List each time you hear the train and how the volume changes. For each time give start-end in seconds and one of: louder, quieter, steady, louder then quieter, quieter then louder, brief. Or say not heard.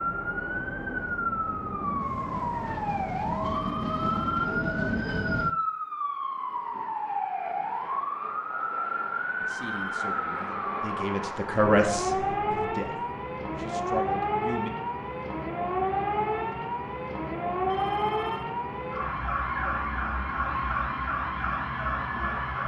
0.0-5.5 louder.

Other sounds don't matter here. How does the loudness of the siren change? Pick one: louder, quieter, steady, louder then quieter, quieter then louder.
steady.